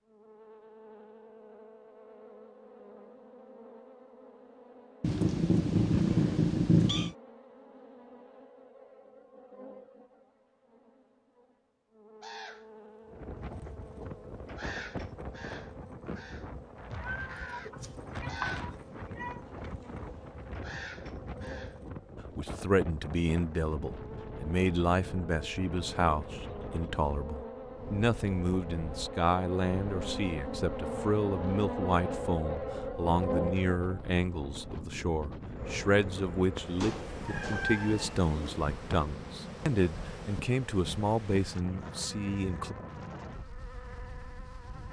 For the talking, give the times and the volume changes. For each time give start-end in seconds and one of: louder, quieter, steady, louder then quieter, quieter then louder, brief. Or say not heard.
22.4-42.8 steady.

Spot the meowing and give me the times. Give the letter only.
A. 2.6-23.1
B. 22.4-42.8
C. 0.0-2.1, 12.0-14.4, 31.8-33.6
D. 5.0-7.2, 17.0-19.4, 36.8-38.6
D.